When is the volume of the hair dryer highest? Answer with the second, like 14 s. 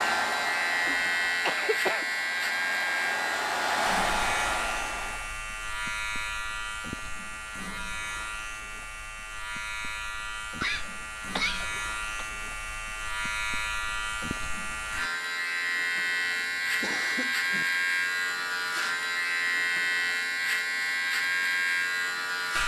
4 s.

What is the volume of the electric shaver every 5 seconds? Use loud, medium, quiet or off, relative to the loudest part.
loud, medium, medium, loud, loud.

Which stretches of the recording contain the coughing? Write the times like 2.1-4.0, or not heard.
0.8-2.0, 10.6-12.2, 15.9-17.6.